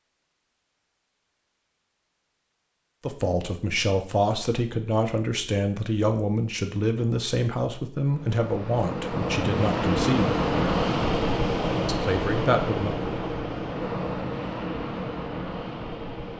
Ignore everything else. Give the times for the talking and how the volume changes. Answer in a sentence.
You can hear the talking from 3.0 to 10.4 s, at a steady volume; and briefly from 11.8 to 12.9 s.